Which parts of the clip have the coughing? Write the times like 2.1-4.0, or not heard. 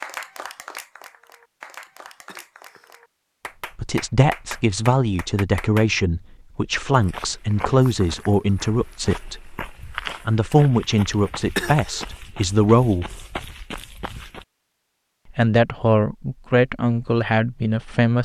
1.9-3.0, 11.1-12.1.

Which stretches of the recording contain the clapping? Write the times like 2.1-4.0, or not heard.
0.0-5.9.